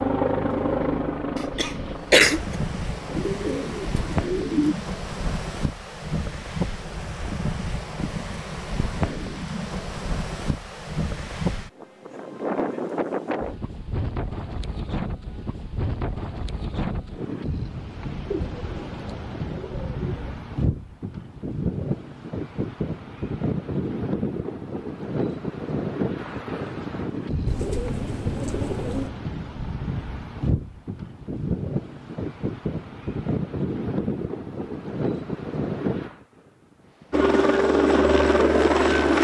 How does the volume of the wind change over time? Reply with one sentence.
The loudness of the wind stays about the same.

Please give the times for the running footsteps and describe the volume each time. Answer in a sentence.
The running footsteps can't be heard in this clip.